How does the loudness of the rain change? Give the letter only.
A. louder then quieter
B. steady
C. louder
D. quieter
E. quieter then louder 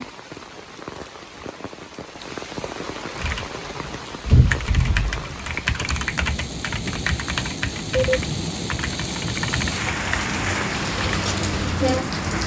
C.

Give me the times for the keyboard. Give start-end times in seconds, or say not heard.
3.1-11.2.